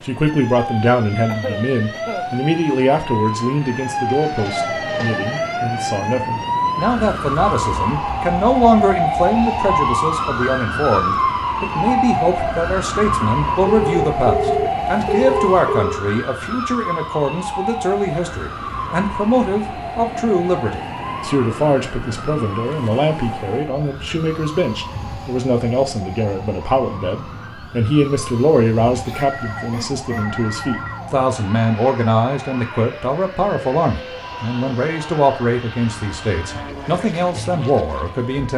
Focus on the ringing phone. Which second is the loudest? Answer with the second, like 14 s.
15 s.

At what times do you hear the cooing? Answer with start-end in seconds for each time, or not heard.
not heard.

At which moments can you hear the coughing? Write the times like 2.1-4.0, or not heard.
1.2-2.3, 29.0-30.2.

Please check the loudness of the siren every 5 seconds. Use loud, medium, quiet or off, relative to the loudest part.
medium, loud, loud, medium, medium, quiet, quiet, quiet.